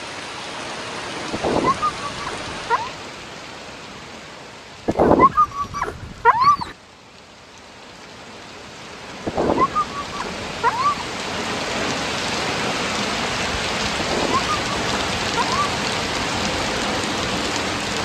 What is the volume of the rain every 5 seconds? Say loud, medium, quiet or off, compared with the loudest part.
medium, quiet, loud, loud.